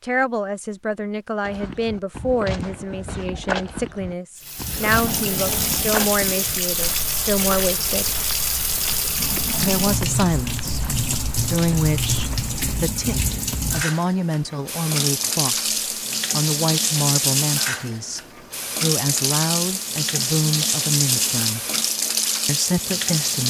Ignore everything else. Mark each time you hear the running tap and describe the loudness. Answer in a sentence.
The running tap can be heard from 4.4 to 23.4 s, at a steady volume.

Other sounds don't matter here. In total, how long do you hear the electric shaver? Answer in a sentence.
The electric shaver can't be heard in this clip.